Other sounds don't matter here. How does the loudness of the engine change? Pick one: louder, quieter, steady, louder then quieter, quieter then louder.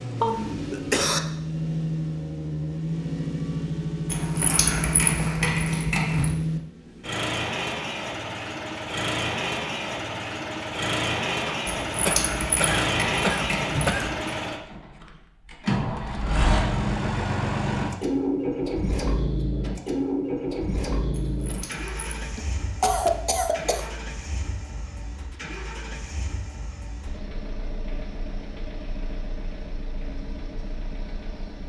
quieter.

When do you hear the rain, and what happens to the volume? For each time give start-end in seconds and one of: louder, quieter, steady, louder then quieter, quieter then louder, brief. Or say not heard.
not heard.